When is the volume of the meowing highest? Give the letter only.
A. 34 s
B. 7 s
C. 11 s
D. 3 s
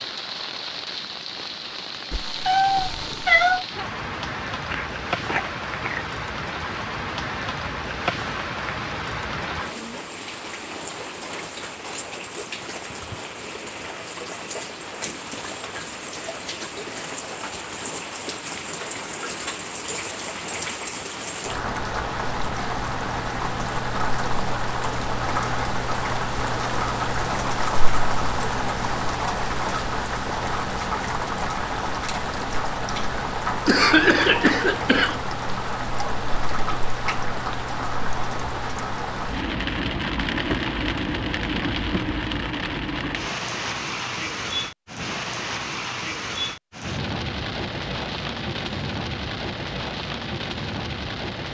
D.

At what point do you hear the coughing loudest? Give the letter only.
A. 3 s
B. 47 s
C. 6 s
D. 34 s
D.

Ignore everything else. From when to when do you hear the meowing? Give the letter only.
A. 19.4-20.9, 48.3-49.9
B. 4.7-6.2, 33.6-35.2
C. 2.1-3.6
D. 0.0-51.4
C.